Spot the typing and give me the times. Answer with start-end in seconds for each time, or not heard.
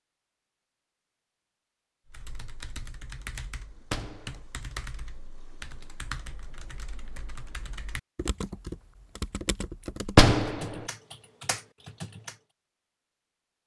2.1-12.4.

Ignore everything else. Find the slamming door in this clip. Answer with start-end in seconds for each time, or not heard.
3.8-4.4, 10.1-10.8.